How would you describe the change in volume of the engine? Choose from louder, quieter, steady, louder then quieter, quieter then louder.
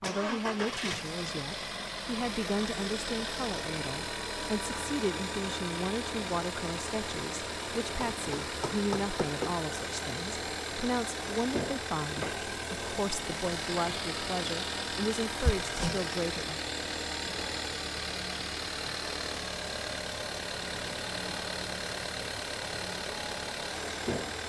steady.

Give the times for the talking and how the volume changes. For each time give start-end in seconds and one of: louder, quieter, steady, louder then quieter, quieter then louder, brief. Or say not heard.
0.0-16.7 steady.